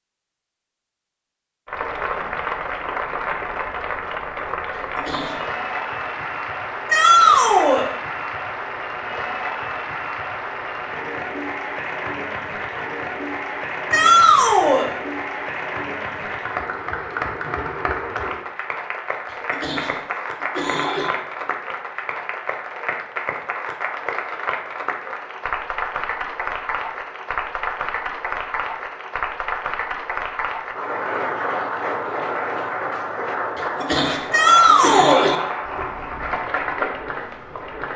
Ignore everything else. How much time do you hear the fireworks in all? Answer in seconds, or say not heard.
not heard.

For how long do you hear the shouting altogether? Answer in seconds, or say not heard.
3 s.